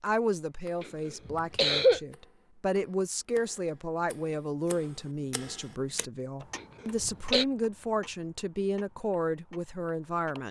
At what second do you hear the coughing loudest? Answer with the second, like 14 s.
2 s.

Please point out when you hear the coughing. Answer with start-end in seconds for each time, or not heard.
0.8-2.0, 6.5-7.5.